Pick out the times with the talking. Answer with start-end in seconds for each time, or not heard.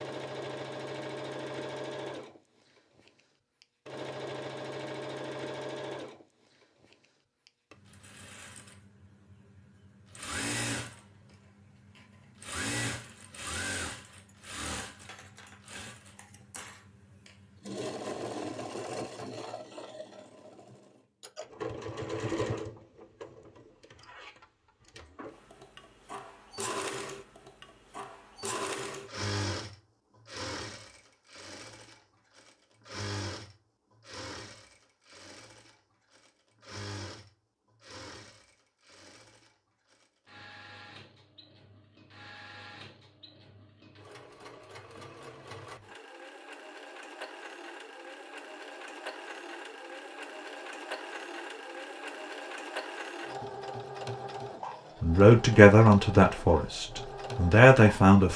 55.0-58.3.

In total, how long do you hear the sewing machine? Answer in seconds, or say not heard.
58 s.